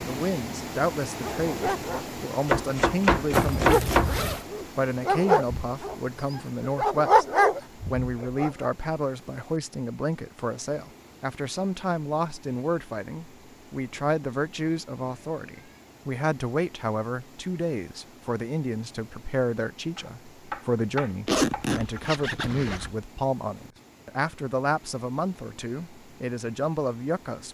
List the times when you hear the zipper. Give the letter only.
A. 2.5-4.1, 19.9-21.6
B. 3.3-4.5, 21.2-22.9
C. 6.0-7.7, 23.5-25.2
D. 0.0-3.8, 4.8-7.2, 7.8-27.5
B.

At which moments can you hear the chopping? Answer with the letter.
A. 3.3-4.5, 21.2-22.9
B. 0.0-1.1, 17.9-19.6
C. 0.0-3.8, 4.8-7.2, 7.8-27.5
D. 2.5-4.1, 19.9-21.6
D.